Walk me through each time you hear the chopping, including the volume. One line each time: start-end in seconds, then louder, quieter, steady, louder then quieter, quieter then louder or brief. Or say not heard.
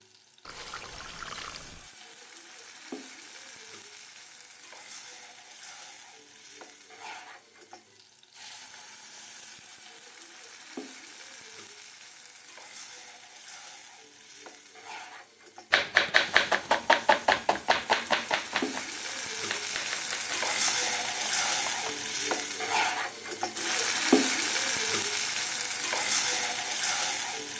15.7-22.1 quieter.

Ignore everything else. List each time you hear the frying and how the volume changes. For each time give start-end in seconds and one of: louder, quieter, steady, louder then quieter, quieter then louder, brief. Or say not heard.
0.0-27.5 louder.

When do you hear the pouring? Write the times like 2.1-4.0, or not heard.
0.5-1.9.